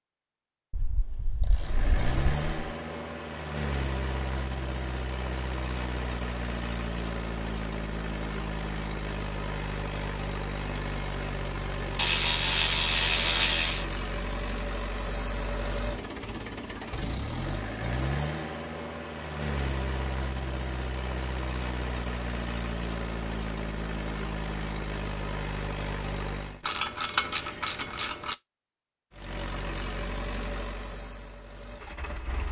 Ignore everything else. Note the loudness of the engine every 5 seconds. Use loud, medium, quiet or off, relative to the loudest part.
loud, loud, loud, loud, loud, loud, medium.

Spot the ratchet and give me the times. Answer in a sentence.
You can hear the ratchet from 0.7 to 2.7 s, from 11.9 to 13.8 s and from 26.6 to 28.4 s.